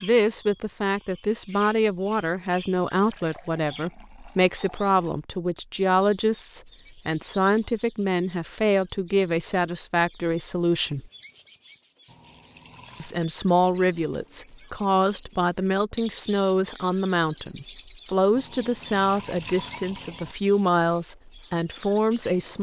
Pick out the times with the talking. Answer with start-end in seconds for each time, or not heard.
0.0-11.1, 13.0-22.5.